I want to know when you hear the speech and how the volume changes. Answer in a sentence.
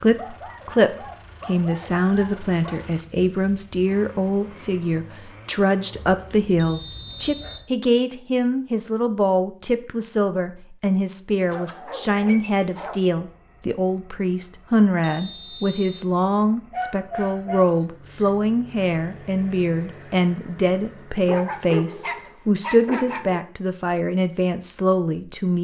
You can hear the speech from 0.0 to 25.5 s, at a steady volume.